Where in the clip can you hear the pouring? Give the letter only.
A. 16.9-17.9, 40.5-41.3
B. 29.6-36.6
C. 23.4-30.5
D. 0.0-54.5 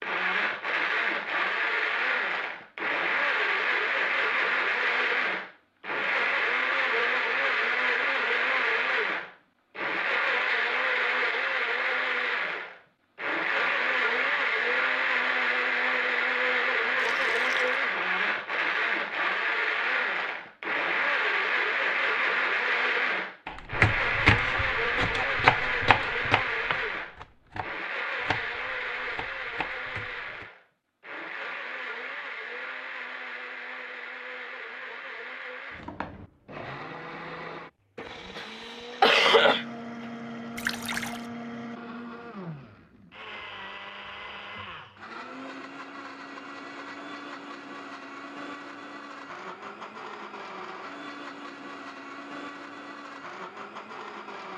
A.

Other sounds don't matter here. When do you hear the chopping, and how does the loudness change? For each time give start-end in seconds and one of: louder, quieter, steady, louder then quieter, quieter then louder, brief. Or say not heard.
23.4-30.5 quieter.